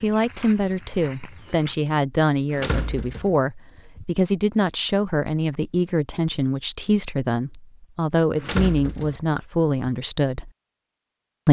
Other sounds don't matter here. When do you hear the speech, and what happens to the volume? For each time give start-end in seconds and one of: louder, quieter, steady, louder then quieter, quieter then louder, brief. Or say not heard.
0.0-10.5 steady.